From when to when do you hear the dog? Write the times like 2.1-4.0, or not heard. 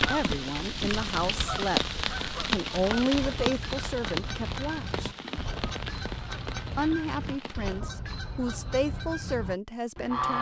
not heard.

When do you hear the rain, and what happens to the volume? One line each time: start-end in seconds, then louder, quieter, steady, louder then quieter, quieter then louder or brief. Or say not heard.
0.0-7.8 quieter.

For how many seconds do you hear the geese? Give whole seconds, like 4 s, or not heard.
10 s.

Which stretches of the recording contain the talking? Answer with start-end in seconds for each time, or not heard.
0.0-5.1, 6.8-10.3.